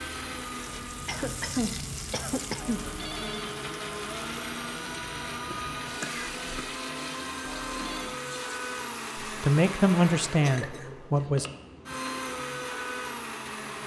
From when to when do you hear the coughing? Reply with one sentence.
You can hear the coughing from 1.1 to 2.8 s, from 5.5 to 6.8 s and from 10.4 to 11.2 s.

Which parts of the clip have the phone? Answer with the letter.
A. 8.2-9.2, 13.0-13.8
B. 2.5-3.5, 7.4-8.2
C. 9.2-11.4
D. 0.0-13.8
B.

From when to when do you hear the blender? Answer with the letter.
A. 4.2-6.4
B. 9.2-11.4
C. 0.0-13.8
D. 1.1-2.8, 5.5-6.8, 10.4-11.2
C.